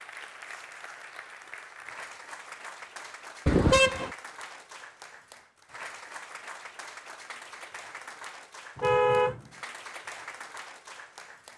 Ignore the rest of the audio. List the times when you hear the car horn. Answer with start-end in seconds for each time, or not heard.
3.5-4.1, 8.8-9.4.